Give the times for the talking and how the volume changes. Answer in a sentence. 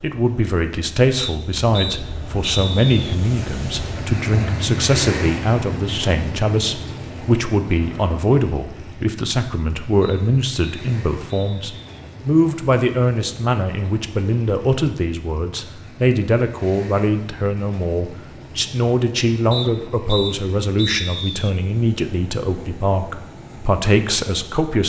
The talking can be heard from 0.0 to 24.8 s, at a steady volume.